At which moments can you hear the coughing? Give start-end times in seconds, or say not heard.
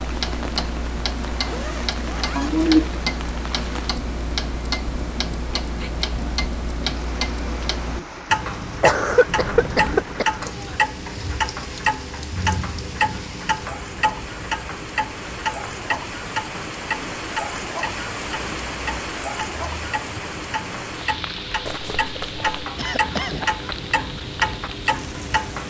2.4-3.0, 8.8-10.3, 22.8-23.4.